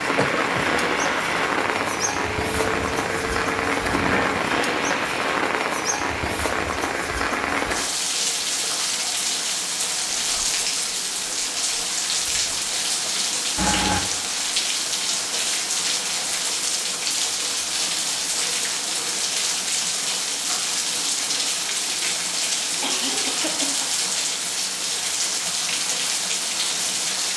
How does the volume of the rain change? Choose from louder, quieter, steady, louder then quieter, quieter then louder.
steady.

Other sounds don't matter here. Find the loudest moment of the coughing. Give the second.
14 s.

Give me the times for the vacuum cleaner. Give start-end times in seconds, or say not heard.
0.0-5.4.